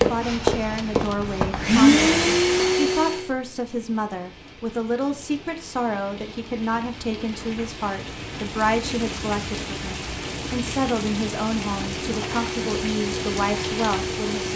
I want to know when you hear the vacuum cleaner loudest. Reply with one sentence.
The volume of the vacuum cleaner peaks at 2 seconds.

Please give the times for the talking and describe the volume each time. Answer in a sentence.
The talking can be heard from 0.0 to 14.5 s, at a steady volume.